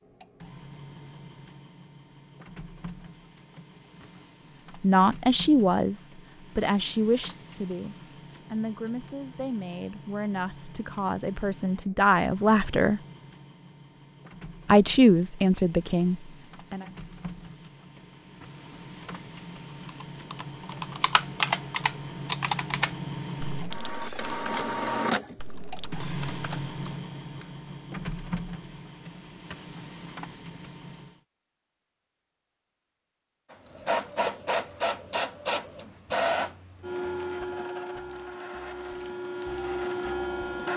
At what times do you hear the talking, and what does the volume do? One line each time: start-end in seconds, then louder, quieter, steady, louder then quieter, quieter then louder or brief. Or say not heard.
4.8-13.0 quieter then louder
14.7-16.9 brief.